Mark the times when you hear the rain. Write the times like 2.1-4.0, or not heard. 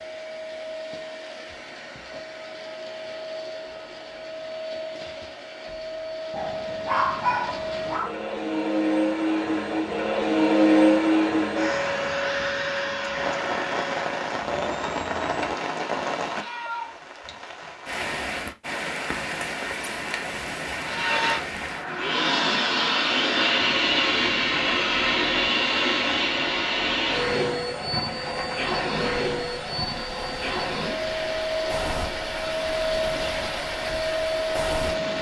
13.1-35.1.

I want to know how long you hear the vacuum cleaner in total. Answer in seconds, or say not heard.
31 s.